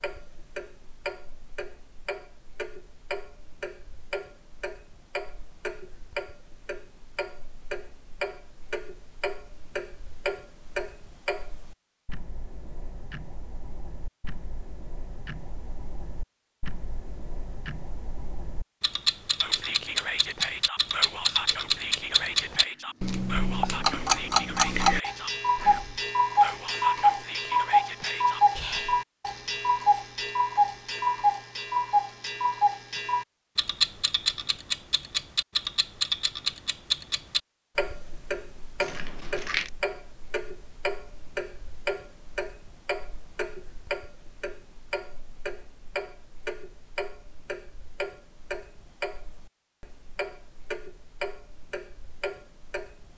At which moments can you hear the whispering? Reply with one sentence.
The whispering can be heard from 19.4 to 29.0 s.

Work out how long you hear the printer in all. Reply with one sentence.
The printer can't be heard in this clip.